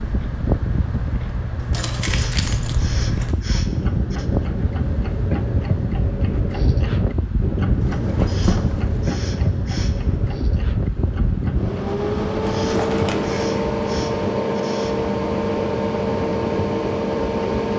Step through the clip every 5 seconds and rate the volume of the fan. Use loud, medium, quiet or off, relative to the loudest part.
medium, medium, loud, loud.